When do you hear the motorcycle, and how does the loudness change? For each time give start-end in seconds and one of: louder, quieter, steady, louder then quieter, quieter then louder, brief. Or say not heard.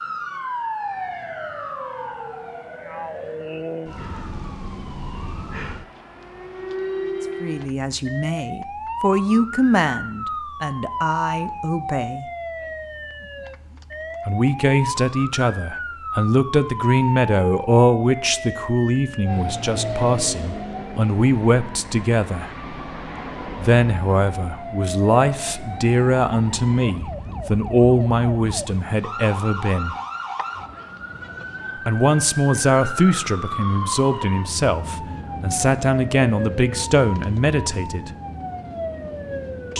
not heard.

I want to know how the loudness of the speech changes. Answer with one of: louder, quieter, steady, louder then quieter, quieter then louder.
steady.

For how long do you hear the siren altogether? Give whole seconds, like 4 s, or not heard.
40 s.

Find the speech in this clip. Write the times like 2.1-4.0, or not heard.
7.4-12.2, 14.2-22.5, 23.6-29.9, 31.9-38.1.